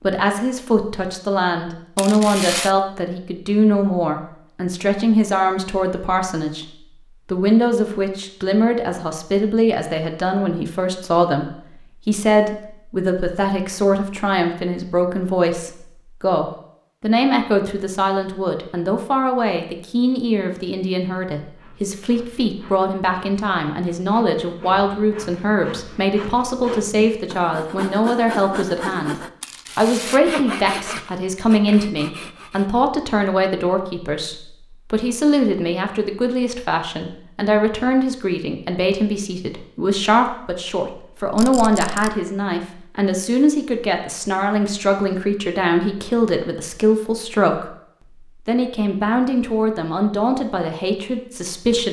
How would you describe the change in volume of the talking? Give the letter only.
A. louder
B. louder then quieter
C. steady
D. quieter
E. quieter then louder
C.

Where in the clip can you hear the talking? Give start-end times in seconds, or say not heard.
0.0-6.7, 7.2-29.1, 29.8-47.7, 48.5-51.8.